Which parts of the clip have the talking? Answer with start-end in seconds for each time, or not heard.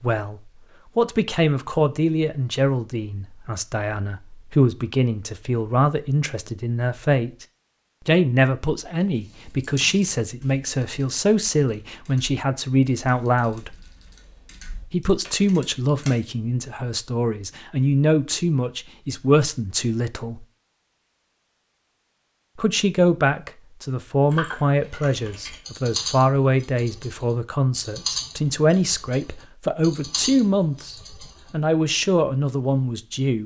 0.0-7.5, 8.1-13.8, 14.9-20.4, 22.6-33.4.